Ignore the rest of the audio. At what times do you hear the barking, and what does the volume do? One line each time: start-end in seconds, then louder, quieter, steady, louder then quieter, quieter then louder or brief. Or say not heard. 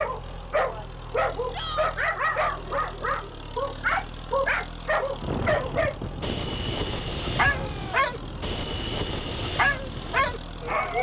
0.0-10.9 steady.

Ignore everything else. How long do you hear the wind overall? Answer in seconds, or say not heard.
6 s.